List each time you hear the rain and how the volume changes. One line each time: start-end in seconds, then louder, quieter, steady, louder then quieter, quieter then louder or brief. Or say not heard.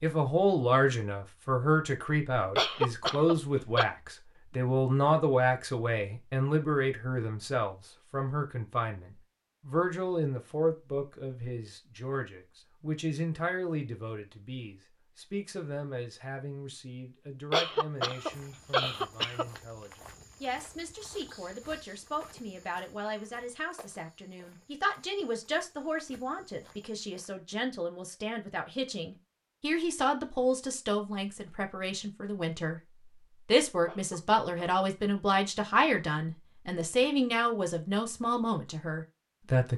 not heard.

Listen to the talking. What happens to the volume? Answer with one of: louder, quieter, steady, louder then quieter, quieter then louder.
quieter then louder.